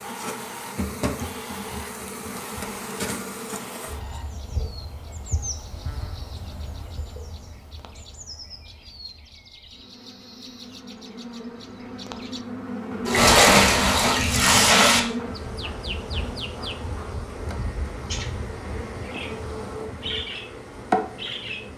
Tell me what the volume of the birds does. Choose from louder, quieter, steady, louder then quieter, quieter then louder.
quieter then louder.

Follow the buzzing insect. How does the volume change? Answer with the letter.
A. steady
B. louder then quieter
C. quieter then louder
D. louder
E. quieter
C.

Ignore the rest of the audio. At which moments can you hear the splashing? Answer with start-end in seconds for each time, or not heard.
13.1-15.0.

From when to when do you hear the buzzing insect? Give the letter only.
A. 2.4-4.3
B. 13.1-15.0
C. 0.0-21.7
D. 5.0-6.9
C.